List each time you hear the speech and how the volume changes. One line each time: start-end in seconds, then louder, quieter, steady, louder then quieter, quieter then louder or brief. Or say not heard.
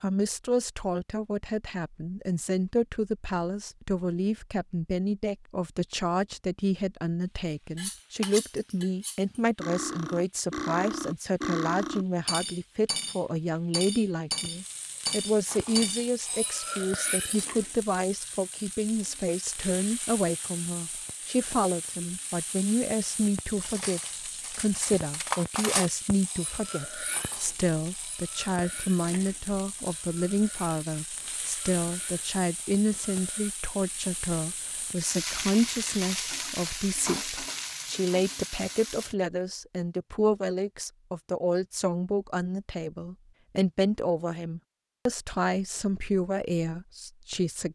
0.0-47.7 steady.